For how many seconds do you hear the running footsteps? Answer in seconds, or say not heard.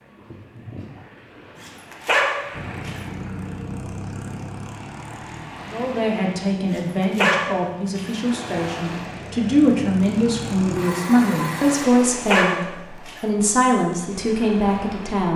not heard.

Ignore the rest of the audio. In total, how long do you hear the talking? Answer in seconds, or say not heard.
10 s.